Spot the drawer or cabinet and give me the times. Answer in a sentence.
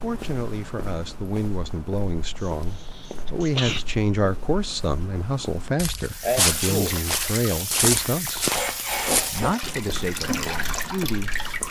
The drawer or cabinet can't be heard in this clip.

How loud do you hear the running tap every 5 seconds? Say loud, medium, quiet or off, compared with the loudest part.
off, loud, loud.